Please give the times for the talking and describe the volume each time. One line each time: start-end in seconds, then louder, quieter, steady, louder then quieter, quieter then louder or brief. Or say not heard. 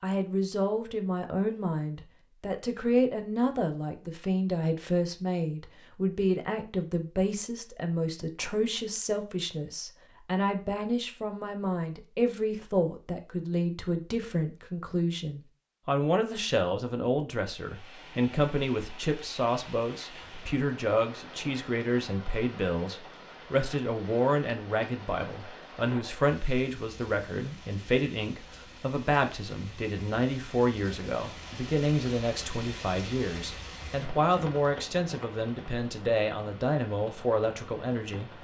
0.0-38.3 steady.